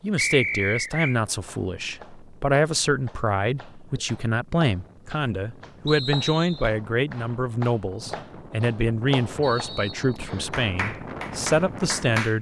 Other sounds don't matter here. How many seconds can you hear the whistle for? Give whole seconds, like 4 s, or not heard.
3 s.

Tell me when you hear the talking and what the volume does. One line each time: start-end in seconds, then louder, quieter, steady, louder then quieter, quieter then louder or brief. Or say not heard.
0.0-12.3 steady.